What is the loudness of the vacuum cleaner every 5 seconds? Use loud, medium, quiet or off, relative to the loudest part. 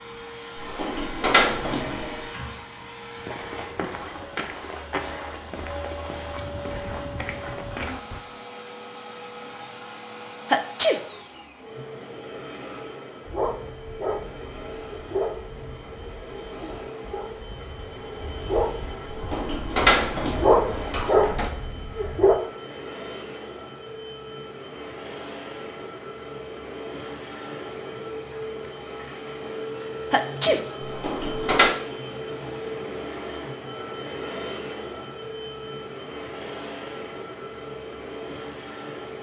medium, medium, medium, medium, medium, loud, loud, loud.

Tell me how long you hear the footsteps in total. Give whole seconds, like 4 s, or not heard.
5 s.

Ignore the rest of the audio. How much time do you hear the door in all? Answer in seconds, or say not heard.
5 s.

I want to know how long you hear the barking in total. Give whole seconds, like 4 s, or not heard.
9 s.